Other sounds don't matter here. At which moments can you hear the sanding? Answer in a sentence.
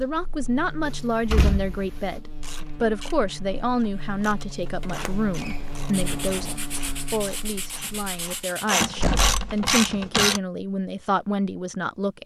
The sanding can be heard from 5.9 to 8.8 s.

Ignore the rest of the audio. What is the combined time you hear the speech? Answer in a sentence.
You can hear the speech for 12 seconds altogether.